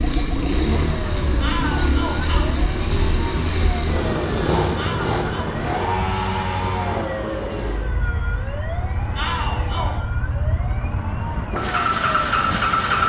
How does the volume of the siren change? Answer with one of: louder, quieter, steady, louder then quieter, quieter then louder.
steady.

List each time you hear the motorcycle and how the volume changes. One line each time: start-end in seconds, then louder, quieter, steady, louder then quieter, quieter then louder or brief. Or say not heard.
0.0-13.0 quieter then louder.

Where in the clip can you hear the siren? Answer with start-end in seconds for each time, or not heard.
0.0-13.0.